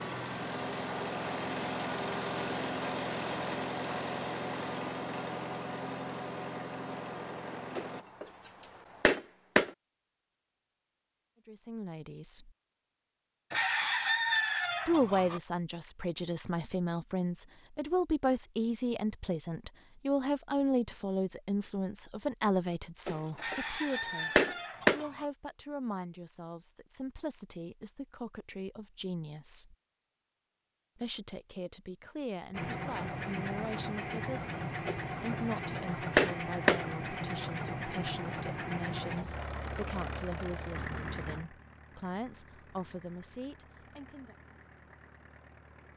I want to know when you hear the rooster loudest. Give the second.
14 s.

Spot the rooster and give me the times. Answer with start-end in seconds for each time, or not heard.
13.5-15.4, 23.4-25.2.